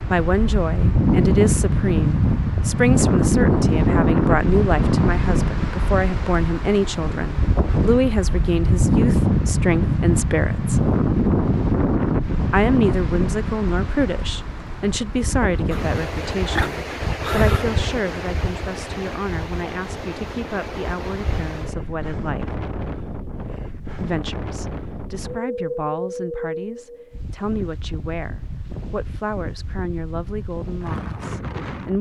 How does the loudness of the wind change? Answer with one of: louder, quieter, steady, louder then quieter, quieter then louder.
quieter.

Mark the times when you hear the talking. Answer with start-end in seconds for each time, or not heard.
0.1-10.9, 12.5-22.6, 24.0-31.9.